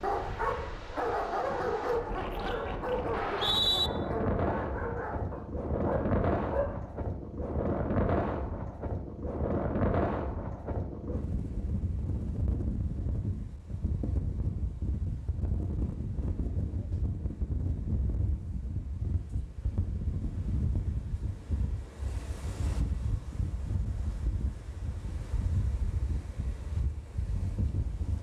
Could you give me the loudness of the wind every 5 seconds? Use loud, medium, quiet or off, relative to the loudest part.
medium, loud, medium, medium, medium, medium.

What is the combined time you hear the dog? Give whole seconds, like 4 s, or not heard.
7 s.